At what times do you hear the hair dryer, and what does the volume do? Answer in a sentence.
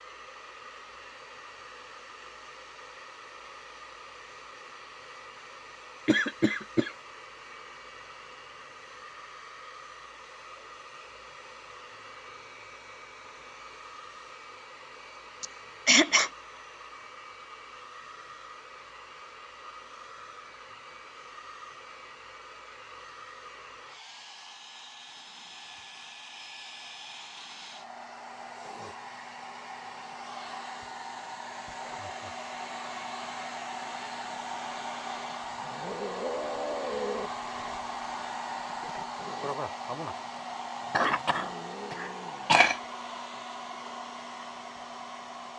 You can hear the hair dryer from 0.0 to 45.5 s, getting louder.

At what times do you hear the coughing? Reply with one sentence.
The coughing can be heard from 6.0 to 6.9 s, from 15.4 to 16.3 s and from 40.9 to 42.8 s.